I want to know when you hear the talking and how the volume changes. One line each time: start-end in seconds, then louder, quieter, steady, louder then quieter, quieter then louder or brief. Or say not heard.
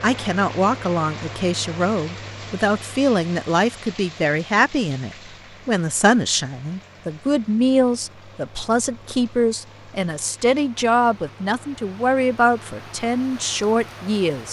0.0-14.4 steady.